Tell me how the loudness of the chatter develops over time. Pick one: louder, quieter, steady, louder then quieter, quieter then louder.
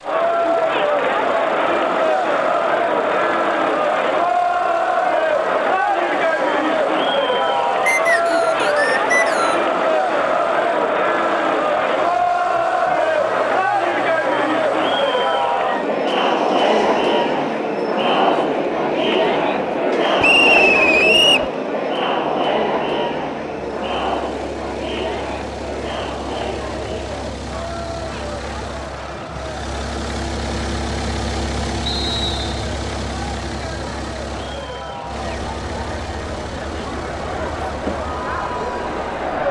quieter.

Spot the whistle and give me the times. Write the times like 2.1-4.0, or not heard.
7.8-9.7, 20.2-21.5, 31.9-32.6.